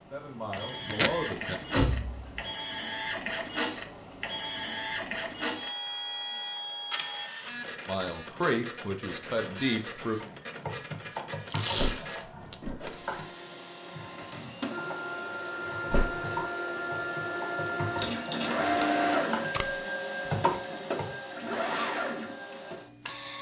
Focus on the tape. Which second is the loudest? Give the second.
1 s.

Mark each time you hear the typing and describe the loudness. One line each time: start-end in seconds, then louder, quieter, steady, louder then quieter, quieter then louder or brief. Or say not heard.
10.2-21.1 louder.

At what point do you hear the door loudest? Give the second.
2 s.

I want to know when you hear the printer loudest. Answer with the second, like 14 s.
19 s.